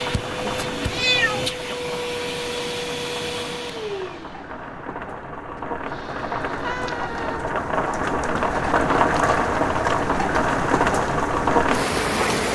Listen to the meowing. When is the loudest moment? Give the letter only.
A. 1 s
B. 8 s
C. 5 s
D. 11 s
A.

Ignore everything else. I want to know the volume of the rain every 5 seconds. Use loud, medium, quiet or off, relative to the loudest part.
quiet, loud, loud.